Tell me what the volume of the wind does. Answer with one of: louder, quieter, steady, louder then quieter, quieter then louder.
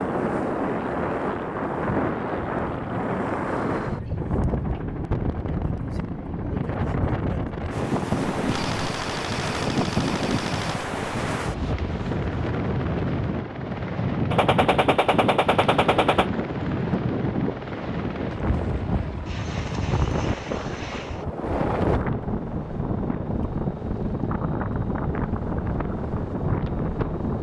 steady.